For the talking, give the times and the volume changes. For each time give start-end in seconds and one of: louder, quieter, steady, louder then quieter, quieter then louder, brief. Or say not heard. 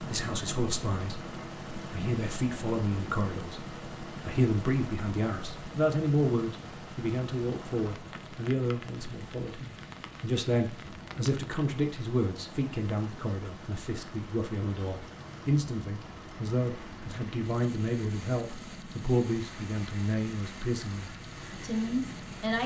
0.0-22.6 steady.